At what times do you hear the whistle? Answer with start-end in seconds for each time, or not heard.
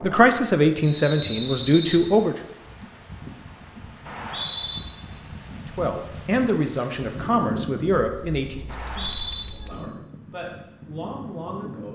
0.8-2.1, 4.0-4.8, 8.7-9.4.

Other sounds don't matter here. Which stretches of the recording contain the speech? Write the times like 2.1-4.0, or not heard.
0.0-2.4, 5.8-11.9.